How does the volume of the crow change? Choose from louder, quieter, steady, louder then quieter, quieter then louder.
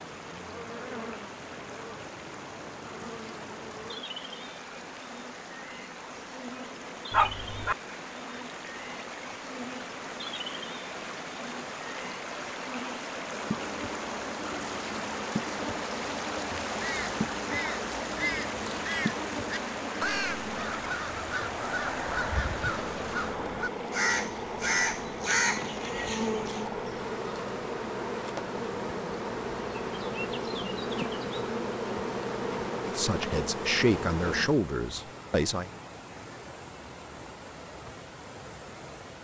louder.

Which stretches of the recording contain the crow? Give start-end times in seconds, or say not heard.
16.6-26.6.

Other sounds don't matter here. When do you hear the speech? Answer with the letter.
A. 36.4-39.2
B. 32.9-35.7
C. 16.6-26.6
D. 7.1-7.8
B.